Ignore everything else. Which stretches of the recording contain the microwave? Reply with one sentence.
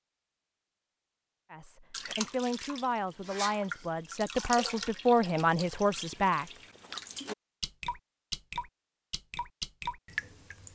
You can't hear the microwave here.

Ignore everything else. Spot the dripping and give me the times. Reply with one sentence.
You can hear the dripping from 1.9 to 10.7 s.